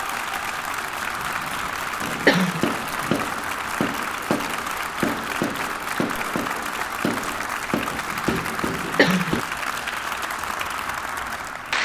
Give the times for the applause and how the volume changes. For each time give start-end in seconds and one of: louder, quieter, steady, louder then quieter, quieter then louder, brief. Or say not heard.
0.0-11.7 steady.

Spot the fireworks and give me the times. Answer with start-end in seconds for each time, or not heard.
2.0-9.4.